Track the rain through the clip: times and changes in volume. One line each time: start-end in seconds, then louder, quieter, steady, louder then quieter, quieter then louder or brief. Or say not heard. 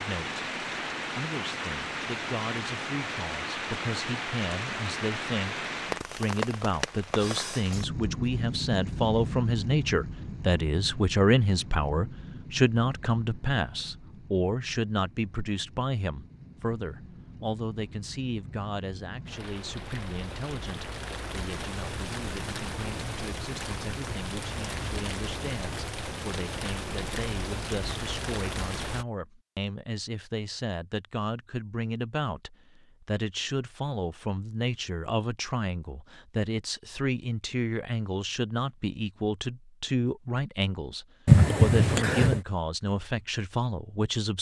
0.0-29.1 quieter then louder.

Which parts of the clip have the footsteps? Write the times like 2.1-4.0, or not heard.
not heard.